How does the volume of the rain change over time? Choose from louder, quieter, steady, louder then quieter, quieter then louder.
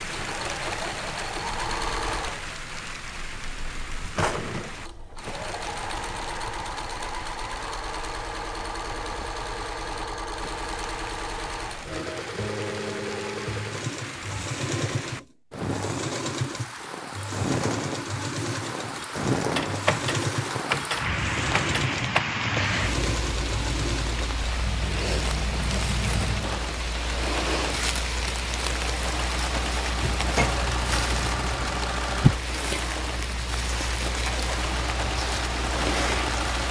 louder.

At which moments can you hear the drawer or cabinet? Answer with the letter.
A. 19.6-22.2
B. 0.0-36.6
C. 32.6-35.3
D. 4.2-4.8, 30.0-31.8
D.